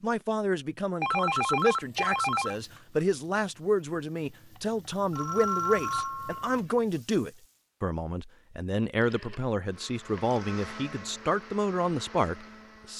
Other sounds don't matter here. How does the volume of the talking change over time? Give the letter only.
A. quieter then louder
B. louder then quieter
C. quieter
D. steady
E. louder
D.